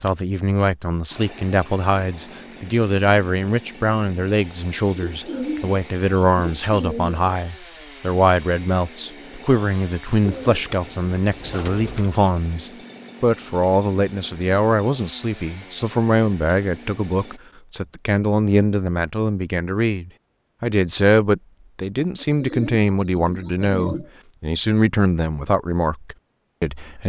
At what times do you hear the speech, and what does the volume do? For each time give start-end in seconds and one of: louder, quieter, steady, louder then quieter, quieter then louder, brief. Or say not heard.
0.0-27.0 steady.